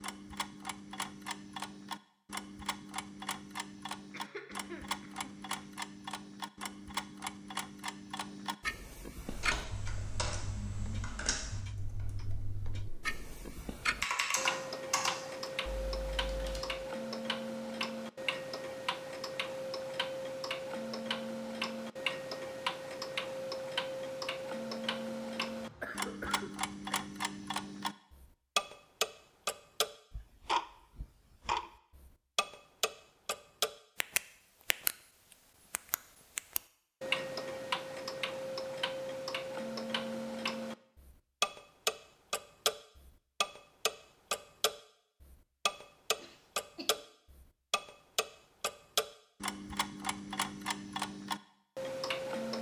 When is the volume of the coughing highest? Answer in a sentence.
The volume of the coughing peaks at 26 seconds.